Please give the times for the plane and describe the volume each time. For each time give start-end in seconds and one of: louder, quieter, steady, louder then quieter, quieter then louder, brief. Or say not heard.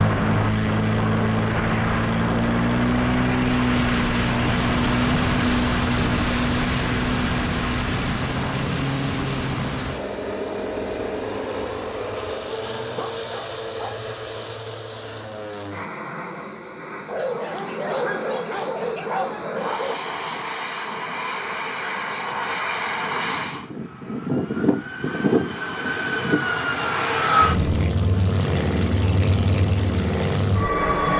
0.0-31.1 quieter then louder.